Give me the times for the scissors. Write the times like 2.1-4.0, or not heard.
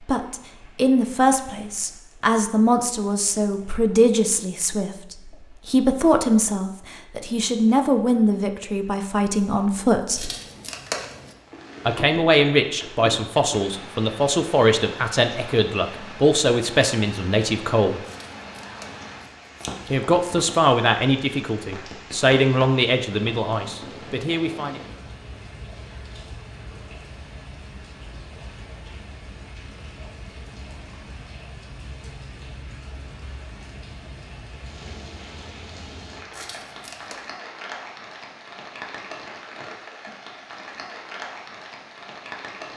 10.1-11.3, 18.1-20.0, 36.3-37.2.